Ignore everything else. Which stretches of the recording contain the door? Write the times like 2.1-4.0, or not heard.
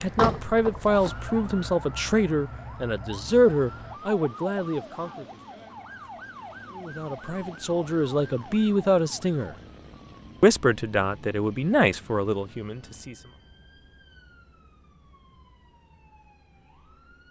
0.1-1.1.